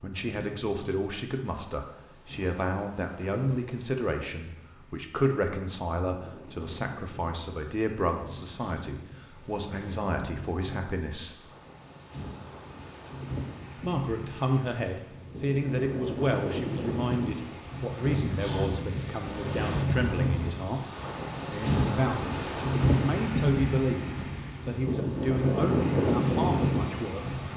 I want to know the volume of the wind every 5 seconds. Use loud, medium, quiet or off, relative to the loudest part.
quiet, quiet, quiet, medium, loud, loud.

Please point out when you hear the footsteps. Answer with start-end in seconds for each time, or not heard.
not heard.